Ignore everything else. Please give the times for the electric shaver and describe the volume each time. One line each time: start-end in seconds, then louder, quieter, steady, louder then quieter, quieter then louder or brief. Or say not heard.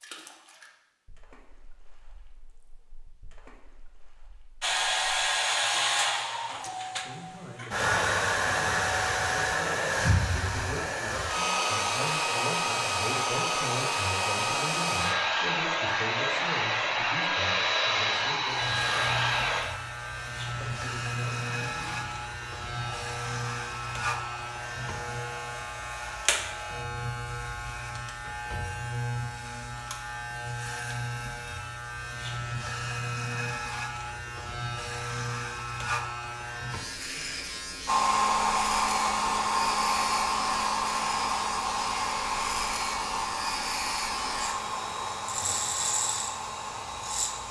18.5-47.4 steady.